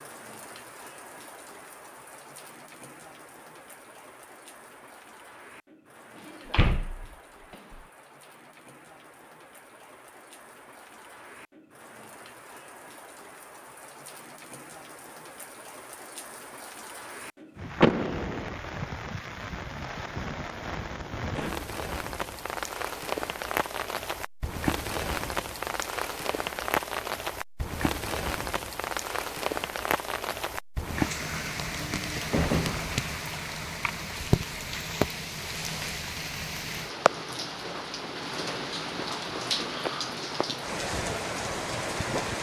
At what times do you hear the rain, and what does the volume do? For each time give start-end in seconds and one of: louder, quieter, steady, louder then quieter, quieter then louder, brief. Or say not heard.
0.0-42.3 louder.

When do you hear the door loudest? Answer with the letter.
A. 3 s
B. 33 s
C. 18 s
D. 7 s
C.